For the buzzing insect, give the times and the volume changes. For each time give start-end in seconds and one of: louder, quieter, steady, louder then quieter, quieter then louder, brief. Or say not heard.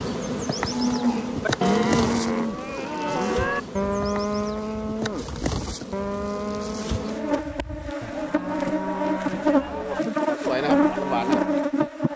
0.0-12.1 quieter then louder.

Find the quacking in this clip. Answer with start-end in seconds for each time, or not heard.
not heard.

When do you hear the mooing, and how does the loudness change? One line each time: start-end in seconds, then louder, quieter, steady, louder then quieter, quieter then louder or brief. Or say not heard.
0.6-11.7 quieter.